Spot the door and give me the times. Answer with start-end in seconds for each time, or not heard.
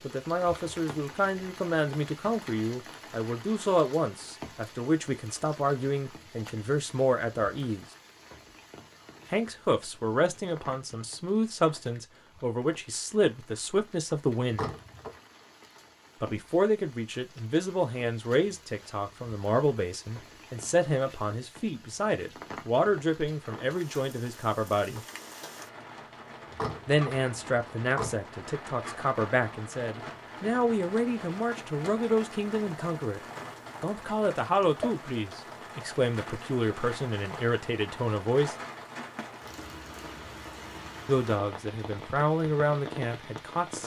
14.5-15.2, 26.5-28.1.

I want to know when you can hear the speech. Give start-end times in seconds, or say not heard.
0.0-7.8, 9.3-14.7, 16.2-25.0, 26.9-33.2, 33.8-38.5, 41.0-43.8.